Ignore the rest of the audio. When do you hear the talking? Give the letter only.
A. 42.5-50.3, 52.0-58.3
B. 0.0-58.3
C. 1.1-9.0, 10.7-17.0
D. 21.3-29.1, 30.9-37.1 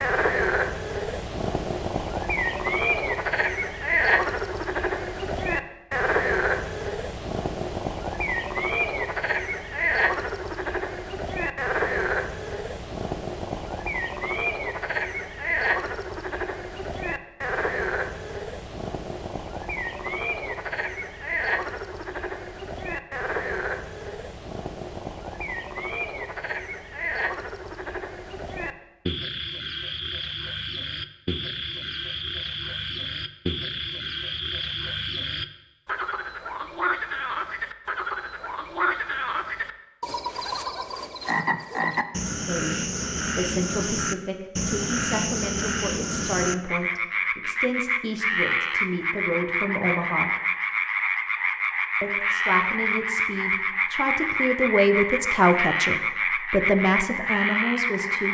A.